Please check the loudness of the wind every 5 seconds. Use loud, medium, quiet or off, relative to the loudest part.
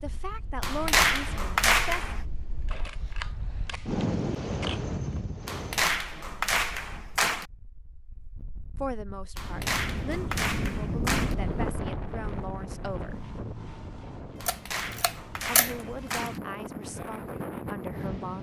loud, medium, loud, loud.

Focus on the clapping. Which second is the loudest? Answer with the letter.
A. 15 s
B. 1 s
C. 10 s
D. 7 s
B.